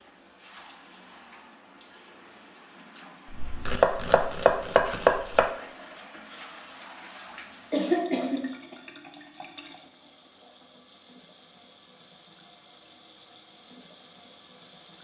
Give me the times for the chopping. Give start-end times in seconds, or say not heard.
3.3-5.5.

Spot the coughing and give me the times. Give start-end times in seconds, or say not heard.
7.7-8.8.